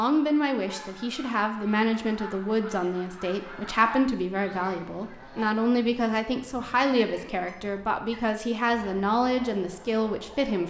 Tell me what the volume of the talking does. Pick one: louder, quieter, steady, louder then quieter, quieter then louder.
steady.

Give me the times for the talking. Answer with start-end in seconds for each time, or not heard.
0.0-10.6.